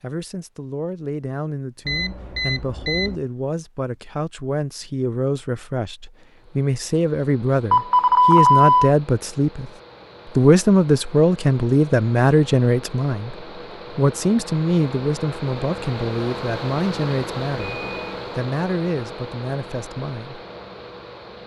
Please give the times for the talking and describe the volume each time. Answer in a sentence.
The talking can be heard from 0.0 to 20.4 s, getting louder then quieter.